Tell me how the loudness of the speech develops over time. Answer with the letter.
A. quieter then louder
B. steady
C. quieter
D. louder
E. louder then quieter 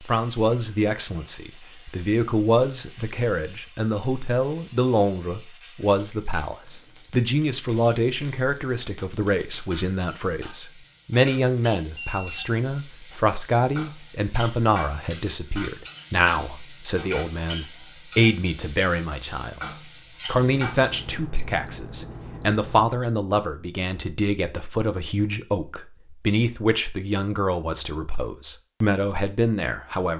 B.